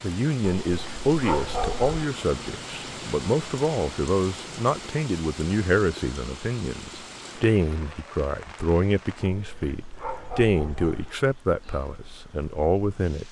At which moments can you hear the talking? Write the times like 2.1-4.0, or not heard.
0.0-13.2.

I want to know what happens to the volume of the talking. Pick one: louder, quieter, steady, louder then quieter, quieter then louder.
steady.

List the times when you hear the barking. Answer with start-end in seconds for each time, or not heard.
0.4-2.0, 9.2-11.2.